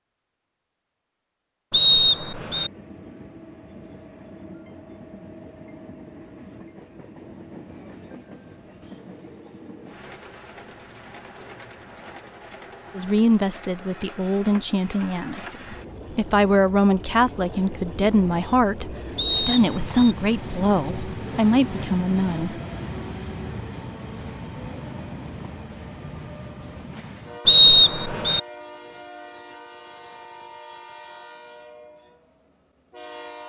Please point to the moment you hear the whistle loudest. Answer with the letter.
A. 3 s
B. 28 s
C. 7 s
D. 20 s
B.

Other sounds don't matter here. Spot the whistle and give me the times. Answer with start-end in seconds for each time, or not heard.
1.7-2.7, 19.1-20.1, 27.4-28.4.